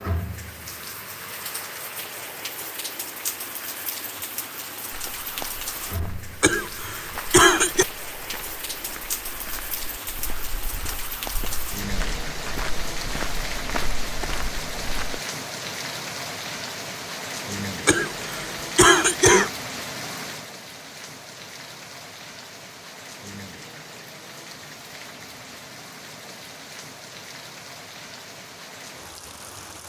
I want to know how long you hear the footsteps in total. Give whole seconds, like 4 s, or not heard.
10 s.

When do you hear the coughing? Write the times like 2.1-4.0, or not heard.
6.4-7.8, 17.9-19.5.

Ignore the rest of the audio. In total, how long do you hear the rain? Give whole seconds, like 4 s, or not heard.
30 s.